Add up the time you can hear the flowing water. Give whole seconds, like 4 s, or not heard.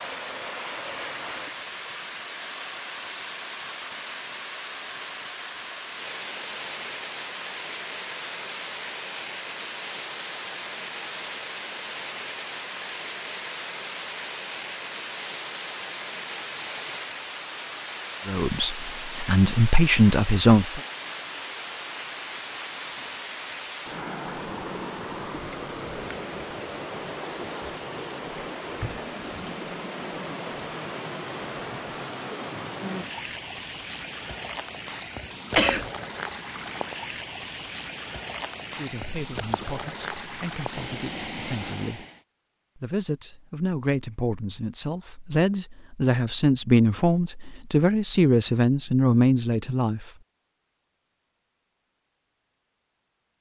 42 s.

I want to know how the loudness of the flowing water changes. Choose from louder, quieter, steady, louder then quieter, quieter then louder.
steady.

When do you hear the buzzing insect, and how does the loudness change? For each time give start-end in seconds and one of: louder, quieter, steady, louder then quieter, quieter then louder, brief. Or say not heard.
not heard.